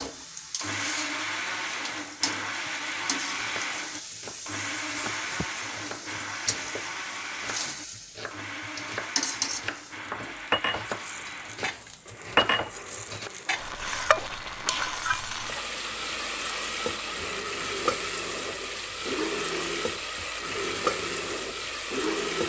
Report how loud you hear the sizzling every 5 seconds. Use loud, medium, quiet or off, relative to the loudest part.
medium, medium, loud, loud, loud.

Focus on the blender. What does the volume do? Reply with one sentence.
The volume of the blender goes down, then up.